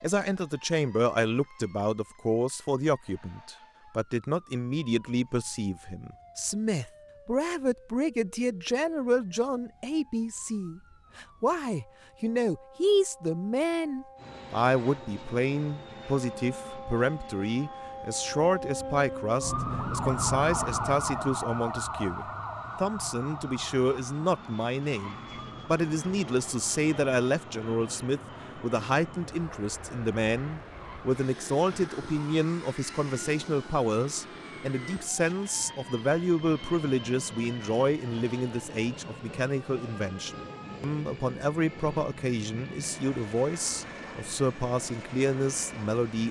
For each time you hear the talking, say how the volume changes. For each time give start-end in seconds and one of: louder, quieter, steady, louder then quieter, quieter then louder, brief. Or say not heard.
0.0-46.2 steady.